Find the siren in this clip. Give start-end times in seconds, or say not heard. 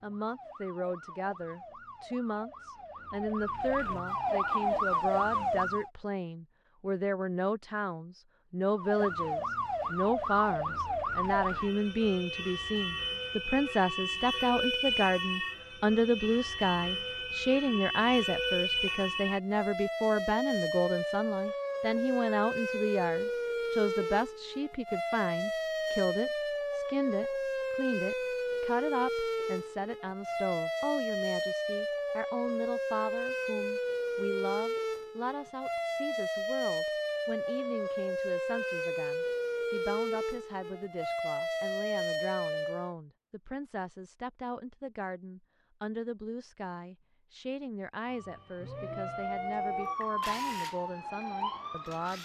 0.0-5.9, 8.8-43.0, 48.0-52.2.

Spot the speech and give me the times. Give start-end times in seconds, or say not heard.
0.0-52.2.